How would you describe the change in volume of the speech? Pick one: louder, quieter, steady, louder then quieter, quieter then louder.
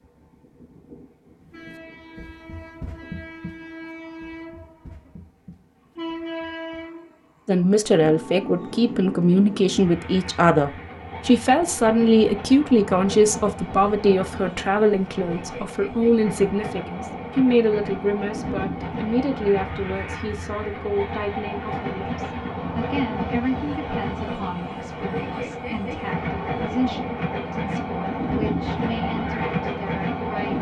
quieter.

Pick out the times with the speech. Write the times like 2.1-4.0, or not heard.
7.5-30.5.